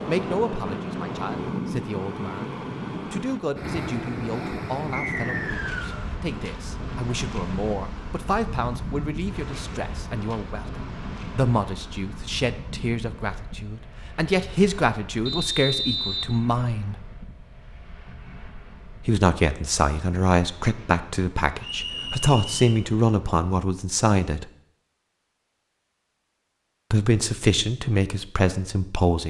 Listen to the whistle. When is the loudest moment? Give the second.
16 s.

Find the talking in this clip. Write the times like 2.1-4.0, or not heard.
0.0-16.9, 19.1-24.4, 26.9-29.2.